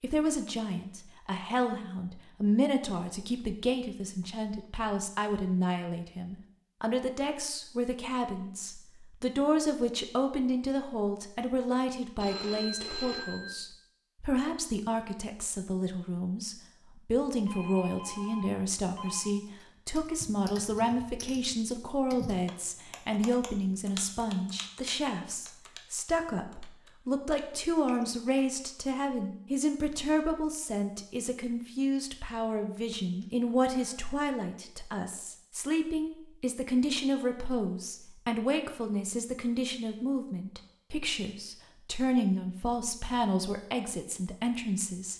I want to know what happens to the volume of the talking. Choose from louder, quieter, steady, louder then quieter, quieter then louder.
steady.